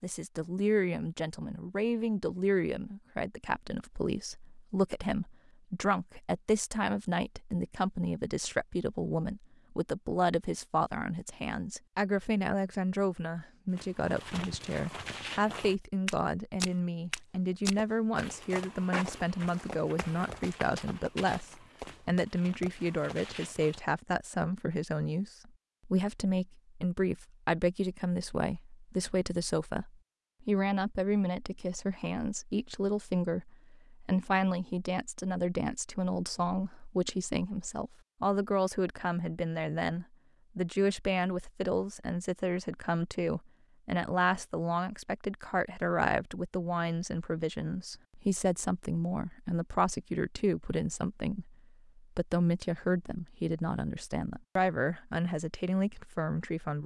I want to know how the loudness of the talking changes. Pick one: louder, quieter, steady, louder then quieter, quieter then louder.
steady.